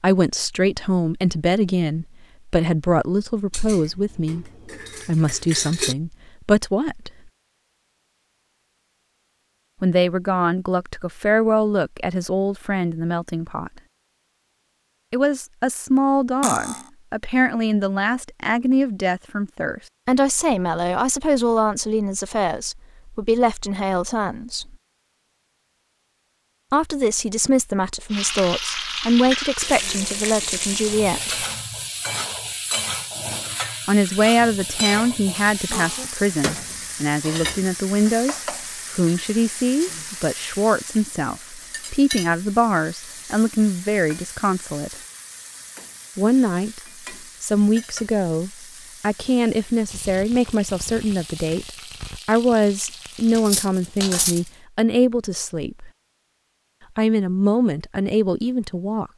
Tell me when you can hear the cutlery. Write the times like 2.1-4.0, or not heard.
3.5-6.0, 16.4-16.9, 35.7-36.1, 53.5-54.4.